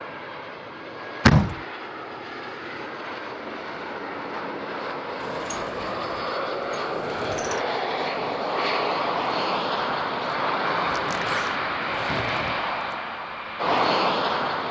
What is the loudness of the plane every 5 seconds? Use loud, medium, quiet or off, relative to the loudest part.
medium, loud, loud.